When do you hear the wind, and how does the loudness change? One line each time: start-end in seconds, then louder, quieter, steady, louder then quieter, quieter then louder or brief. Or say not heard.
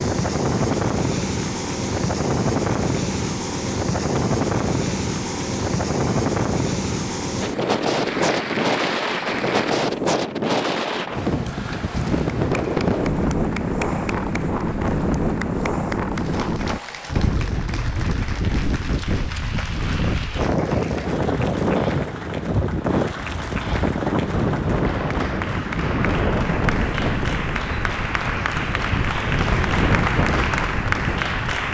0.0-31.6 steady.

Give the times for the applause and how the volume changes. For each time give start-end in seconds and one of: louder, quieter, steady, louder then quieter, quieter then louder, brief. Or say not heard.
0.0-9.8 louder
12.2-31.6 louder.